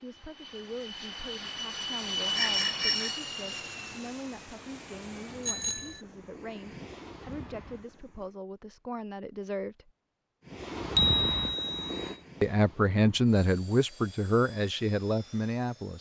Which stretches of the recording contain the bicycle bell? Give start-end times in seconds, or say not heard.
2.4-3.1, 5.4-6.0, 10.9-11.9.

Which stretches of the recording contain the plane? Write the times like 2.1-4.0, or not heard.
0.0-8.3, 10.4-15.9.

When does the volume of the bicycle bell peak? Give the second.
11 s.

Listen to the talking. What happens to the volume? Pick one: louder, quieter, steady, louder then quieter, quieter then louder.
louder.